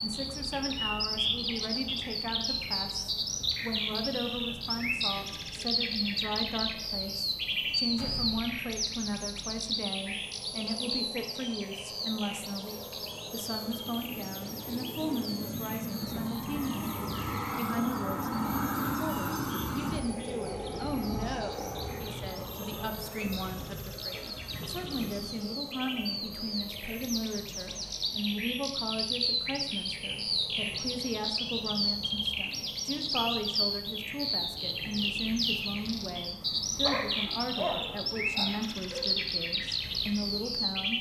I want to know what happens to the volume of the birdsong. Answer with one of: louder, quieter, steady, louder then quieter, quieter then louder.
quieter then louder.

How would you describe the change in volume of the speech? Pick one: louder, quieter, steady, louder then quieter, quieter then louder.
steady.